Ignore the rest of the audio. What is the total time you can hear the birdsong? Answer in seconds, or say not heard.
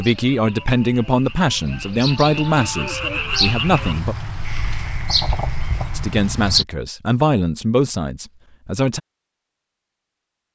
7 s.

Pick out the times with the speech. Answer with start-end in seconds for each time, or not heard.
0.0-4.2, 6.0-9.0.